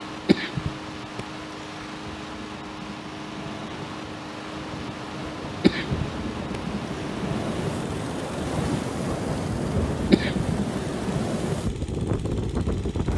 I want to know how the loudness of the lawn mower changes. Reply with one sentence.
The volume of the lawn mower stays about the same.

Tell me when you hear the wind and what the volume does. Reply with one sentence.
You can hear the wind from 0.0 to 13.1 s, getting louder.